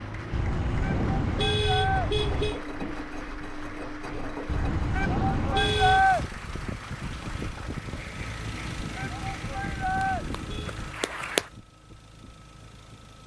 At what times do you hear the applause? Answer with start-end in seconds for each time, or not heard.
0.0-11.5.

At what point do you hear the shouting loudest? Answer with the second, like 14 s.
6 s.